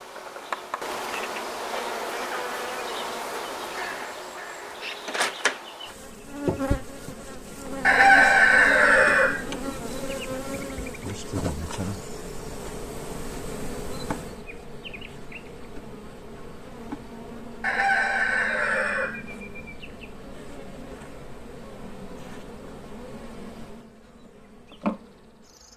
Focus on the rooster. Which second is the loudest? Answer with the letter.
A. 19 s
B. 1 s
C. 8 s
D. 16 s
C.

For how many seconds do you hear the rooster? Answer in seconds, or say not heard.
3 s.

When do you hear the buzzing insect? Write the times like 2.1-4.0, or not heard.
0.0-25.7.